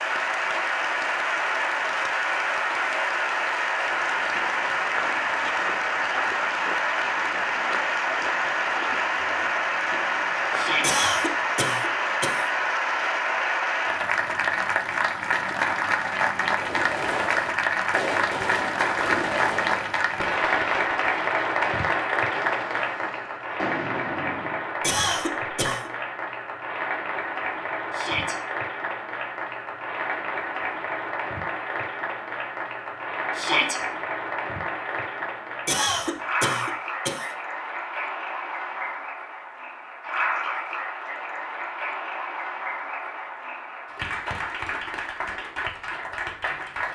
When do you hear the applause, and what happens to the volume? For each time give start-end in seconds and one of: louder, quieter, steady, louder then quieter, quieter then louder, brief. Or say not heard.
0.0-46.9 quieter.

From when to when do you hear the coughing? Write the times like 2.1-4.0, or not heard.
10.8-12.4, 24.8-25.9, 35.6-37.3.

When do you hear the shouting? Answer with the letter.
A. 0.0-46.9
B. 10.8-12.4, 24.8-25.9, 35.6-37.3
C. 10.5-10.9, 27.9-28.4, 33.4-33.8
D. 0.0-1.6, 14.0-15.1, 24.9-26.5
C.